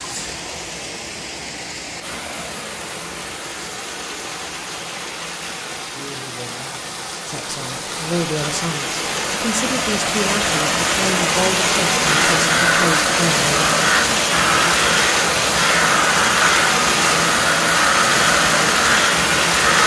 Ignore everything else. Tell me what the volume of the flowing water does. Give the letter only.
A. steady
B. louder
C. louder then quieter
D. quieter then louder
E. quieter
B.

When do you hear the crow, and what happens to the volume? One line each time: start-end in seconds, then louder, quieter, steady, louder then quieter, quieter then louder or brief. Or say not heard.
12.1-19.8 steady.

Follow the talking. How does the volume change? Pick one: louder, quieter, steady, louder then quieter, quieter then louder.
steady.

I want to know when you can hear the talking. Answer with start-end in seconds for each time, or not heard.
7.2-13.7.